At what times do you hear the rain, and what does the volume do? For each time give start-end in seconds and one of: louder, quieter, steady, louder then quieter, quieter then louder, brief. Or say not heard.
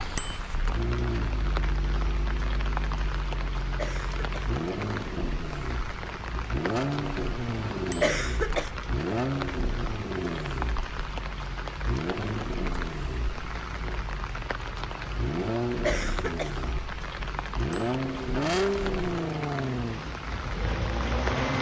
0.0-21.5 steady.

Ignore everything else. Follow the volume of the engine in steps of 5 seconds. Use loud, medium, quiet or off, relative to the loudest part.
medium, loud, medium, loud, loud.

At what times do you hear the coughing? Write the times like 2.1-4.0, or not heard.
3.8-4.5, 8.0-8.7, 15.8-16.5.